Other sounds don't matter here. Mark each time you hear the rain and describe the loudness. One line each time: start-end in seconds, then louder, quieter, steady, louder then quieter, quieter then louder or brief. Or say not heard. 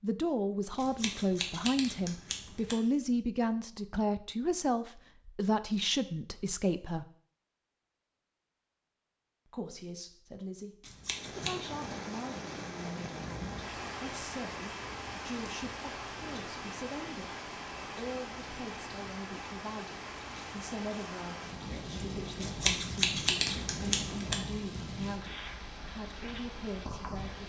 11.1-27.4 steady.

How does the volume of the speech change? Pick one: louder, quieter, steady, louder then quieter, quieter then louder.
quieter.